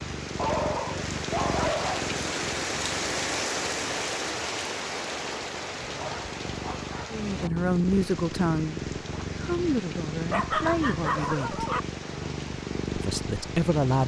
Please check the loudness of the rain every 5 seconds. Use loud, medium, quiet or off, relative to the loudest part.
loud, medium, medium.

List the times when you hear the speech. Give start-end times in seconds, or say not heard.
7.1-11.7, 12.9-14.0.